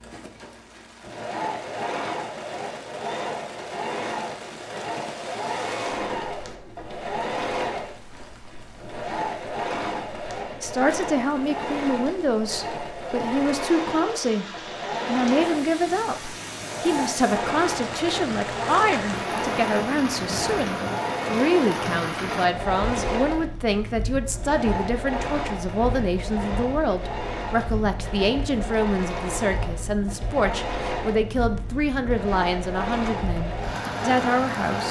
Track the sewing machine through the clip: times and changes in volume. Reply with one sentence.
The sewing machine can be heard from 0.0 to 34.8 s, at a steady volume.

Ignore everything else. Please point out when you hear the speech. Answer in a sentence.
You can hear the speech from 10.6 to 14.4 s and from 15.1 to 34.8 s.